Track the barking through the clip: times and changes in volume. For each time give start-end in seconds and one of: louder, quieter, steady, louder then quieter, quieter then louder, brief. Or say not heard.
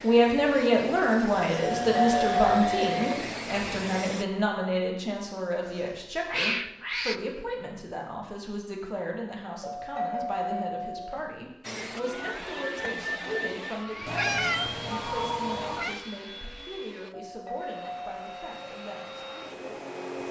not heard.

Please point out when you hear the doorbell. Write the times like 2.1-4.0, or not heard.
1.6-3.2, 9.6-11.2, 17.1-18.7.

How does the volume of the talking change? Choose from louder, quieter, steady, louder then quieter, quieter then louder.
quieter.